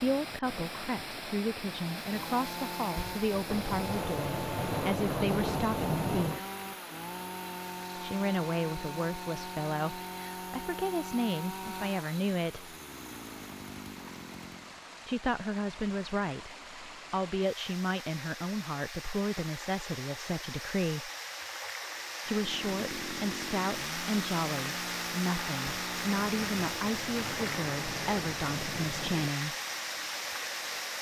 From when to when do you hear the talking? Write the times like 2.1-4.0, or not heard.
0.0-6.5, 8.0-12.7, 15.1-21.1, 22.2-29.6.